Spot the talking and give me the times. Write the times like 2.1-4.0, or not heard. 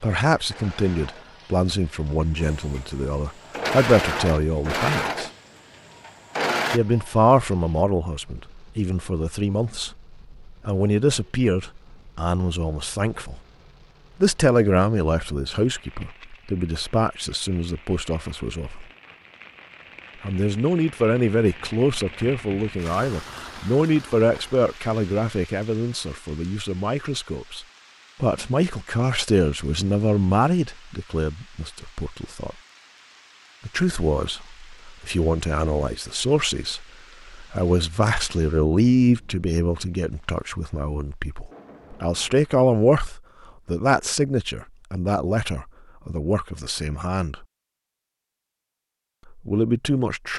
0.0-5.3, 6.7-13.4, 14.2-18.9, 20.2-32.5, 33.6-47.5, 49.4-50.3.